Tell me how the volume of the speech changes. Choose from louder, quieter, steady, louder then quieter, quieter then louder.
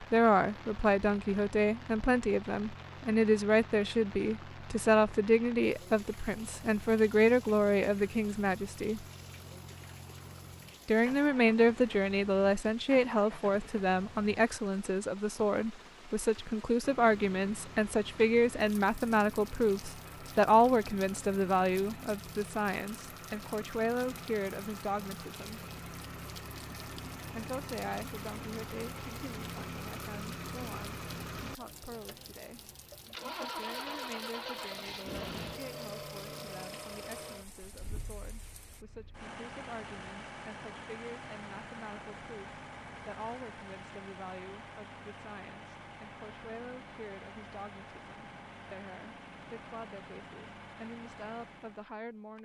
quieter.